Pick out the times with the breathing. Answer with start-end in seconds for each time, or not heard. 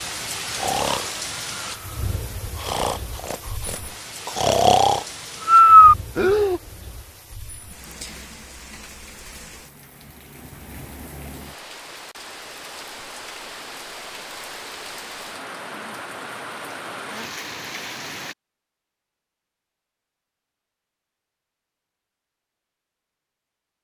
0.5-6.6.